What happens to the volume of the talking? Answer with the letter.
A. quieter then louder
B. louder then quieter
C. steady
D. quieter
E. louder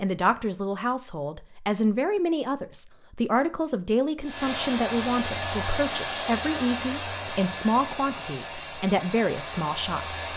C.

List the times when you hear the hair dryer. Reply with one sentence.
The hair dryer can be heard from 4.2 to 10.3 s.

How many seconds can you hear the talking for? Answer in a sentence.
You can hear the talking for 10 seconds altogether.